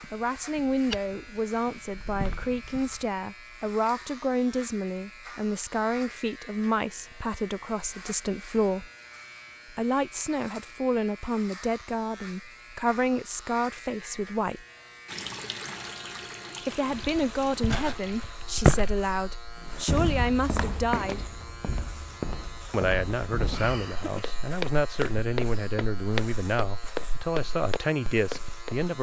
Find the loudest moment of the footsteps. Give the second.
19 s.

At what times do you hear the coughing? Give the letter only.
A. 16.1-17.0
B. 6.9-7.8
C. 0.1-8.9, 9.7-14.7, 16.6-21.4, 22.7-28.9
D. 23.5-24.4
D.